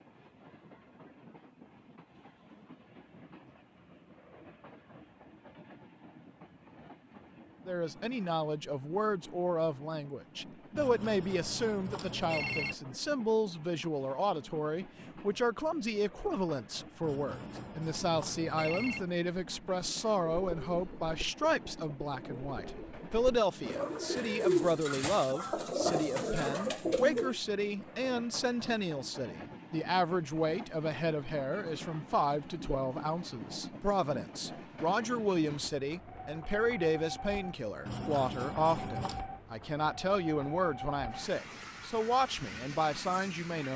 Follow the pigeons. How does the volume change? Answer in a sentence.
The volume of the pigeons goes up.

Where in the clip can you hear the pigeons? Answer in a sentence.
You can hear the pigeons from 20.1 to 27.4 s.